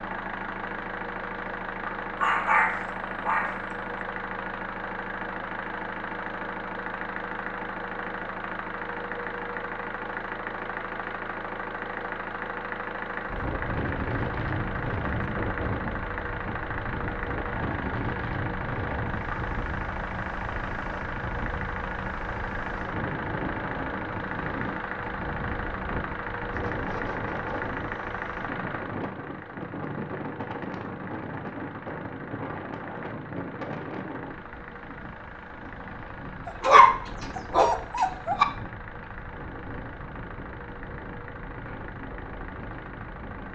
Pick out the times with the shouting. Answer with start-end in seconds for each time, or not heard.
not heard.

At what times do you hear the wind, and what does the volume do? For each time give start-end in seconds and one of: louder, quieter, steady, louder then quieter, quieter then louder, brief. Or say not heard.
13.2-43.5 quieter.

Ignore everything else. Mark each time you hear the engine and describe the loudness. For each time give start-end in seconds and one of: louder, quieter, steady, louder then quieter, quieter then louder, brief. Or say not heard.
0.0-43.5 quieter.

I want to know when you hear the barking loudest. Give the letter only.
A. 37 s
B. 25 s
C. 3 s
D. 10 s
A.